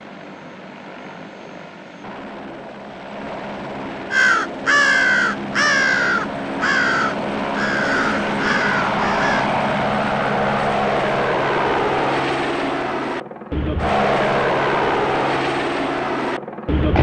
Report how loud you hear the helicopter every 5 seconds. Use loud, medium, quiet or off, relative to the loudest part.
quiet, loud, loud, loud.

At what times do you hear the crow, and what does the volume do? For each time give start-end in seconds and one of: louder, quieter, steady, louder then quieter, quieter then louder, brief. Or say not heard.
4.1-9.5 quieter.